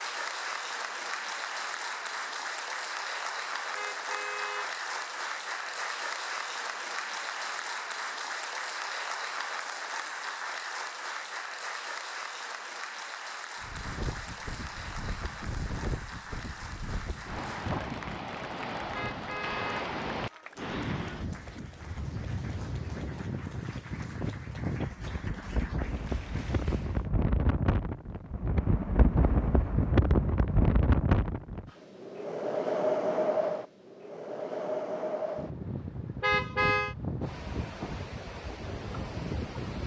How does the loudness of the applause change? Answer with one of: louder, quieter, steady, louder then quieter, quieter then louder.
quieter.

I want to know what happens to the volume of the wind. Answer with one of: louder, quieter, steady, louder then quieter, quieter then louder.
louder then quieter.